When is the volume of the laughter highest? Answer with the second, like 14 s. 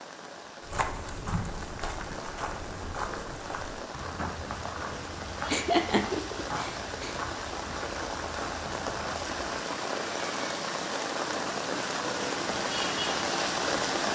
6 s.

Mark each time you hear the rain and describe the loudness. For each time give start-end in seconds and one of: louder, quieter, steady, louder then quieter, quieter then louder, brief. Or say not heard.
0.0-14.0 louder.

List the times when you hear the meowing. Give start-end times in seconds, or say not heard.
not heard.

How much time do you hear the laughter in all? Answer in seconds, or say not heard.
2 s.